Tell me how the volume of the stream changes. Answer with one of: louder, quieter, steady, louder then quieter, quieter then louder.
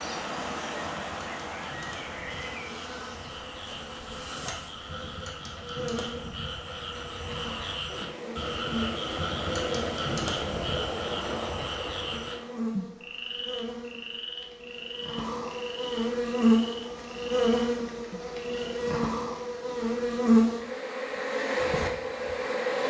quieter then louder.